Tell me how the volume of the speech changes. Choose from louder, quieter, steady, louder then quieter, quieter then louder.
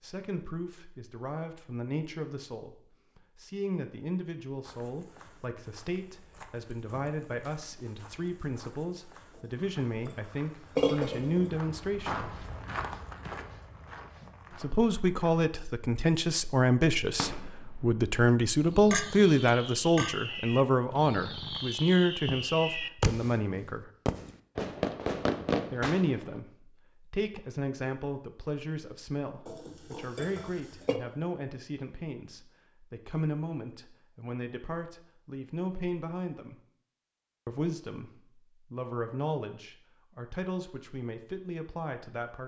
louder then quieter.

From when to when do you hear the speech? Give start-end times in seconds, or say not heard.
0.0-12.4, 14.6-23.9, 25.7-36.6, 37.5-42.4.